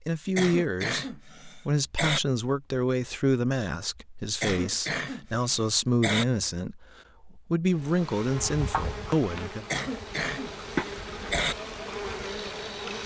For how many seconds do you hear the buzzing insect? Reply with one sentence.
You can hear the buzzing insect for 5 seconds altogether.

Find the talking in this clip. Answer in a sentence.
The talking can be heard from 0.1 to 9.7 s.